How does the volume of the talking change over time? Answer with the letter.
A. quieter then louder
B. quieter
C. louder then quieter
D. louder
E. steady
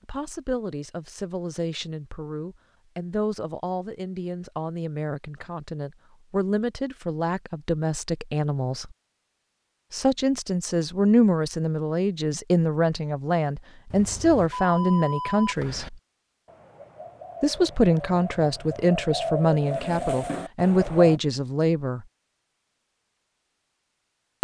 D.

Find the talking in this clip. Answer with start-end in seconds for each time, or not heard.
0.1-8.9, 9.9-15.9, 17.4-22.1.